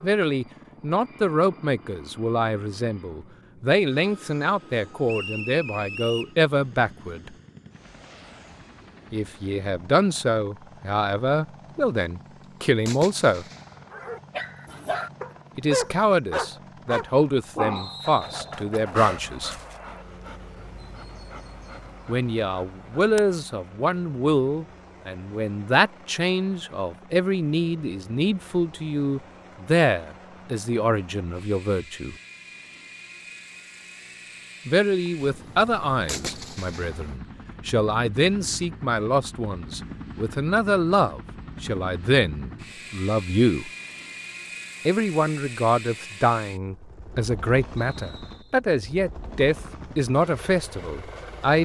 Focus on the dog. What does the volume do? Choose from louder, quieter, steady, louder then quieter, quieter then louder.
quieter.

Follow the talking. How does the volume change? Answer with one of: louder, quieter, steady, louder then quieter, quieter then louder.
steady.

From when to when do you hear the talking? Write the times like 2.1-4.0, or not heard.
0.0-7.3, 9.1-13.4, 15.6-19.6, 22.1-32.1, 34.6-43.7, 44.9-51.6.